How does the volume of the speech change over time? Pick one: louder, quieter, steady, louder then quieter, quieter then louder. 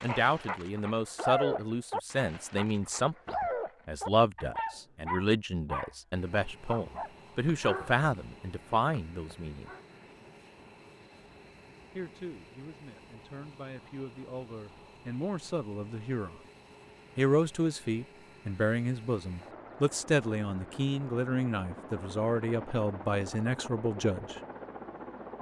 quieter then louder.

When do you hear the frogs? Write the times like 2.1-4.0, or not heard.
not heard.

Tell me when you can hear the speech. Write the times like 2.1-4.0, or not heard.
0.0-9.7, 11.9-16.4, 17.1-24.4.